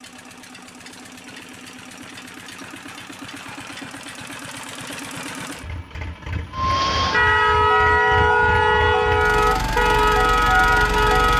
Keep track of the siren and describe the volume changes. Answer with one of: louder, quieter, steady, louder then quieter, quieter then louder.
steady.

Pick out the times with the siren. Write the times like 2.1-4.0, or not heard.
6.5-11.3.